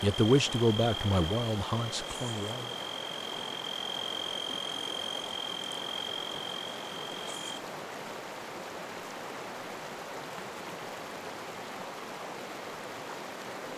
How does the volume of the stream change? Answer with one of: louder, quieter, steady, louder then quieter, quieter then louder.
steady.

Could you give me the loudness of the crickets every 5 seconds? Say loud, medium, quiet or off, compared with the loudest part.
loud, loud, off.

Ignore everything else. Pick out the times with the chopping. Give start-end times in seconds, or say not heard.
not heard.